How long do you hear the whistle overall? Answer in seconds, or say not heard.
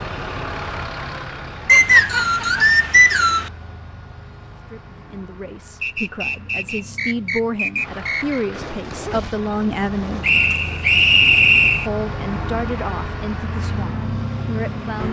6 s.